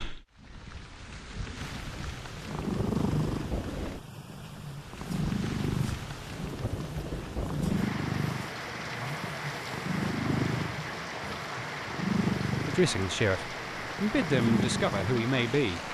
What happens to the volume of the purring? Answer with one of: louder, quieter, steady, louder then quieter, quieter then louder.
steady.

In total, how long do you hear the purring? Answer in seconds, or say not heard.
14 s.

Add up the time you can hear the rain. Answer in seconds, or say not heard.
16 s.